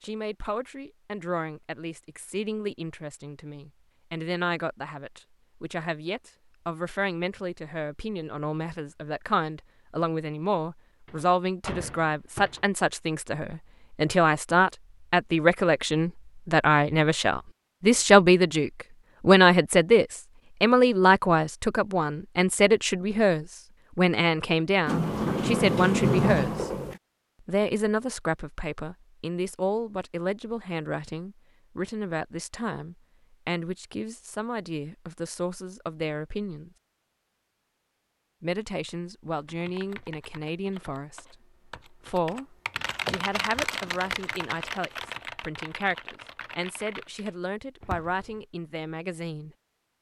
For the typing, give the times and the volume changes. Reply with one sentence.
You can hear the typing from 39.4 to 48.5 s, getting louder then quieter.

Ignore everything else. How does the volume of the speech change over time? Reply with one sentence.
The loudness of the speech goes up, then down.